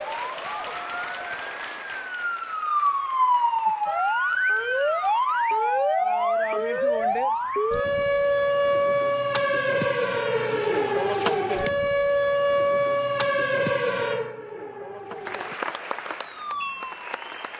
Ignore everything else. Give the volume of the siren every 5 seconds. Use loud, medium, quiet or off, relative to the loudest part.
loud, loud, loud, quiet.